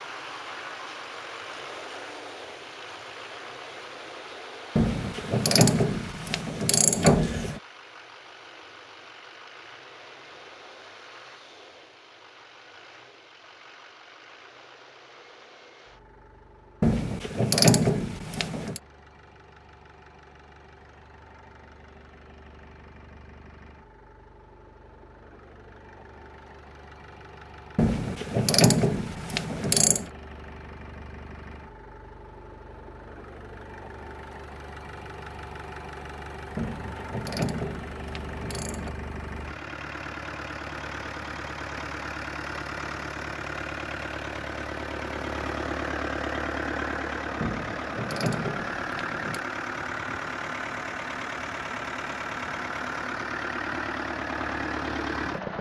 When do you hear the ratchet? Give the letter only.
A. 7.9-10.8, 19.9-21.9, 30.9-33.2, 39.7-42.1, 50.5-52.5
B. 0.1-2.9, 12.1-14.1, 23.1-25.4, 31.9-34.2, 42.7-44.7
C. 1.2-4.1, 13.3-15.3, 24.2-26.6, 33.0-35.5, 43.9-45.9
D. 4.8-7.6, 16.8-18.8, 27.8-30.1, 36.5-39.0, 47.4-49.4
D.